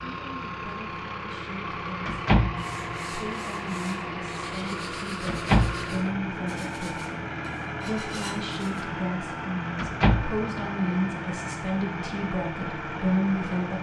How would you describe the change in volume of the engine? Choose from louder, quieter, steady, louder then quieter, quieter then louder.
steady.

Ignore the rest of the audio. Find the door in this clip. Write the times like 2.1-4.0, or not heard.
2.0-2.9, 5.2-5.9, 9.8-10.4.